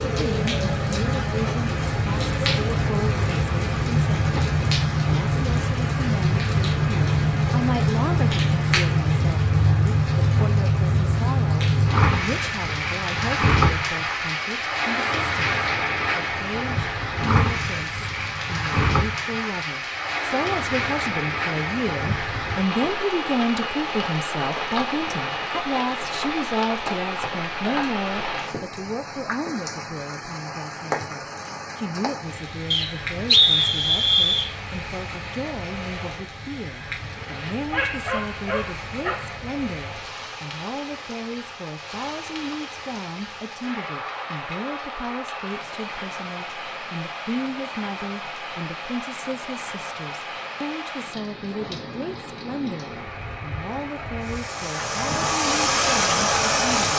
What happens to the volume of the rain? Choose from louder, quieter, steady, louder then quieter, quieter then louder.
quieter.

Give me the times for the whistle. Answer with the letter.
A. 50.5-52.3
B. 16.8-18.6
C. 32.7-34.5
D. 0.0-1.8
C.